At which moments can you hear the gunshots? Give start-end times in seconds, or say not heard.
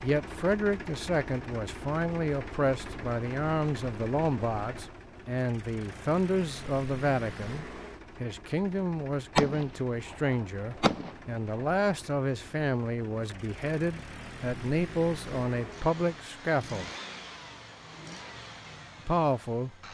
9.3-11.8.